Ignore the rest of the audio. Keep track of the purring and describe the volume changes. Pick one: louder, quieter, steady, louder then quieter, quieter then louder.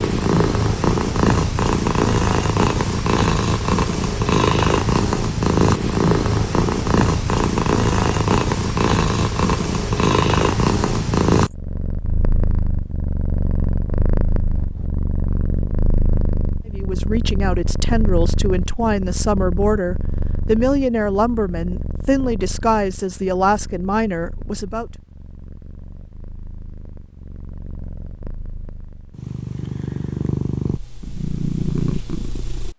quieter then louder.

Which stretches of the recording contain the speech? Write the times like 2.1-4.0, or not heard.
16.6-24.9.